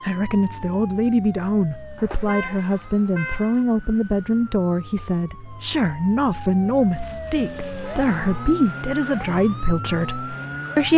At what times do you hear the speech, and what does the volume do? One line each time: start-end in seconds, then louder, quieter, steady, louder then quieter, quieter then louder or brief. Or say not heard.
0.0-10.9 steady.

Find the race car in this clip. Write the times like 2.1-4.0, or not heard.
not heard.